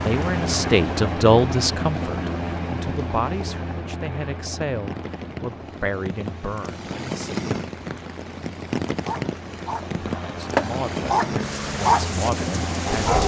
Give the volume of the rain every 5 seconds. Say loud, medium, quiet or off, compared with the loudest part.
medium, loud, loud.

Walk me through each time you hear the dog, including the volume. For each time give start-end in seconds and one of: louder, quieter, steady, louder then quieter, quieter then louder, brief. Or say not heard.
9.1-13.2 louder then quieter.